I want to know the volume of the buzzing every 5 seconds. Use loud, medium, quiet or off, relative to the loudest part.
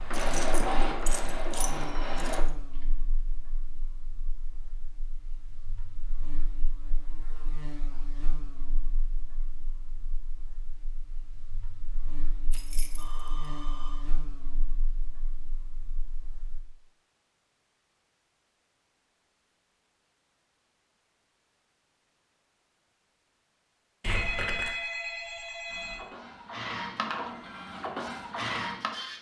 loud, loud, loud, quiet, off, off.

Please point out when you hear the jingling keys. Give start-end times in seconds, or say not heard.
0.1-2.4, 12.5-13.3, 24.0-24.8.